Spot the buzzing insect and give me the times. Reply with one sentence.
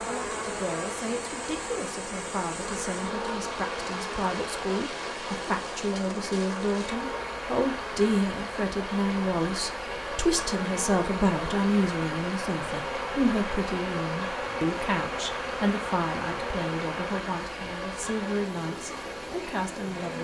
The buzzing insect can be heard from 0.0 to 20.2 s.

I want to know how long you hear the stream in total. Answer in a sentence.
The stream can be heard for 20 seconds in total.